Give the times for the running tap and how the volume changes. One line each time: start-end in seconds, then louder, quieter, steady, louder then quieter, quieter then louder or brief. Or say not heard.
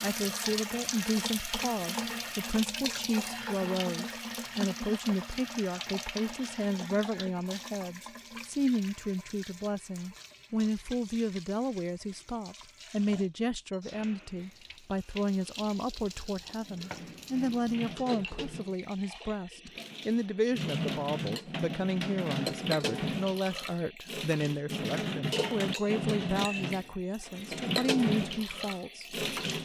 0.0-29.6 quieter then louder.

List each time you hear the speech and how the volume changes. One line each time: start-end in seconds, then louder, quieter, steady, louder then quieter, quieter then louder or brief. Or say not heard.
0.0-29.6 steady.